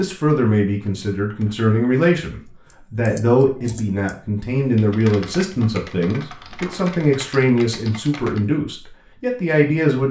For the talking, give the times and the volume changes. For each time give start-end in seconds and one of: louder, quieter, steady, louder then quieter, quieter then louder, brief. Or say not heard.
0.0-10.0 steady.